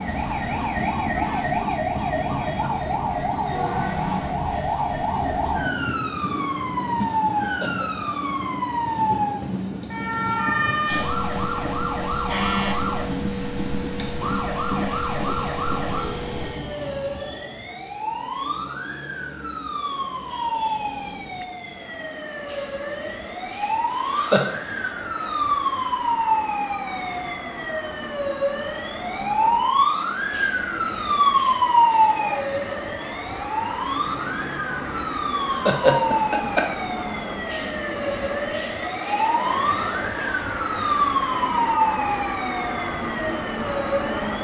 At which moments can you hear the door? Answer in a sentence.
You can't hear the door here.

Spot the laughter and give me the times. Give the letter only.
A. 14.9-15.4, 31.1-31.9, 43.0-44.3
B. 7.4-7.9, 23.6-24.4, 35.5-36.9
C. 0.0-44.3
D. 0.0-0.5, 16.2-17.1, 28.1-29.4
B.